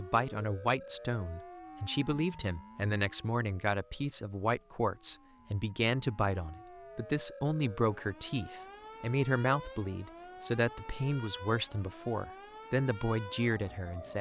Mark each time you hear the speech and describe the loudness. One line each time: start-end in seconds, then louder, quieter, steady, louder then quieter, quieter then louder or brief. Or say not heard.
0.0-14.1 steady.